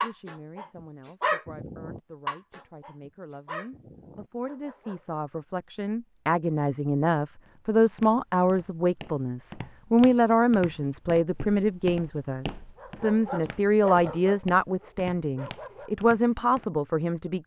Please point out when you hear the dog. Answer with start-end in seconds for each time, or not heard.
0.0-5.2, 12.8-16.1.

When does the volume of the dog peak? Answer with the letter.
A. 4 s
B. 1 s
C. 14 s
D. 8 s
B.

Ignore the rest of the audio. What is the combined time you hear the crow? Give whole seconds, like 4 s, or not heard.
not heard.